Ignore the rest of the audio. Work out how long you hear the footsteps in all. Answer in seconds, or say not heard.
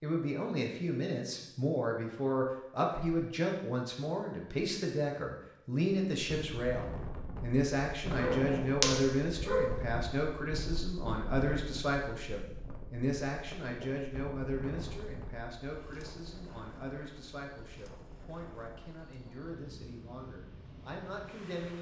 not heard.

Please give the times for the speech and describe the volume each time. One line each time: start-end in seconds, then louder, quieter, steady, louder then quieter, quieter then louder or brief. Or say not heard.
0.0-21.7 quieter.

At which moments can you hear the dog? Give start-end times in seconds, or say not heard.
8.2-9.8.